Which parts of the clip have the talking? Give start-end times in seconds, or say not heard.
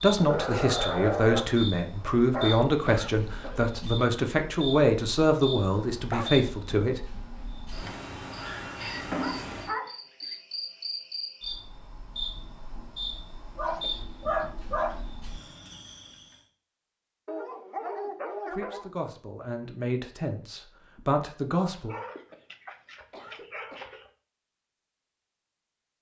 0.0-7.0, 18.5-21.9.